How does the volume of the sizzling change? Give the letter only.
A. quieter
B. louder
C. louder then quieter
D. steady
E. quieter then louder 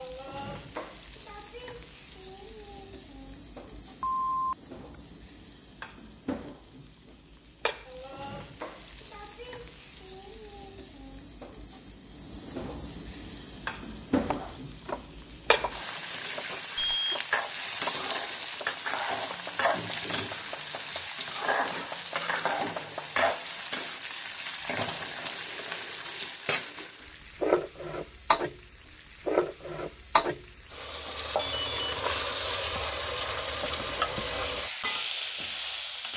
B.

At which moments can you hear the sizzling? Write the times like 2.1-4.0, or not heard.
0.0-36.1.